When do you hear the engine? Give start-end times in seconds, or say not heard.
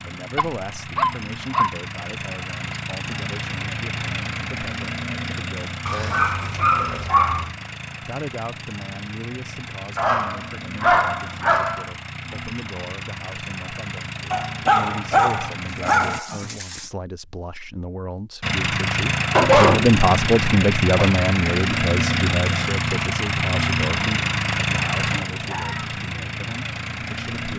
0.0-16.2, 18.4-27.5.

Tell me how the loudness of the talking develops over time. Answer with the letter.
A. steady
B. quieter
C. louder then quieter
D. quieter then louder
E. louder
C.